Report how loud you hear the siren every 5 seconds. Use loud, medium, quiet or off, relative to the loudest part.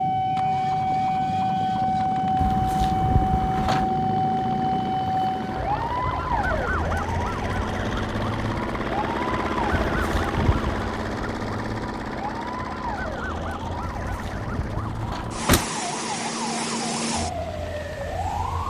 loud, medium, medium, medium.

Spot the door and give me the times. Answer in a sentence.
You can hear the door from 2.4 to 3.9 s, from 9.8 to 10.8 s and from 14.0 to 15.7 s.